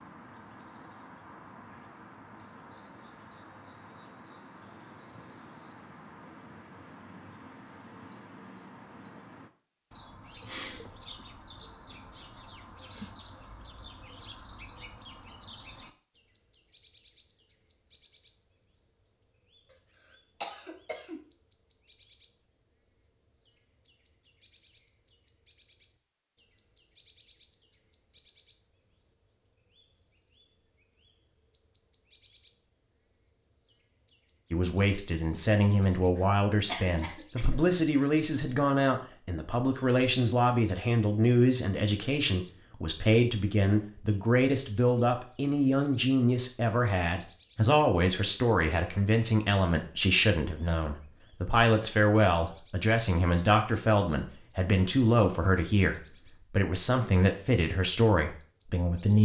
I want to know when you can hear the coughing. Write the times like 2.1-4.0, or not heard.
19.7-21.2, 36.1-37.6.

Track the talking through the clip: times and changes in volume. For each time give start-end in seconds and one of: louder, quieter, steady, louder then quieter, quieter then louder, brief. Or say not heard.
34.5-59.2 steady.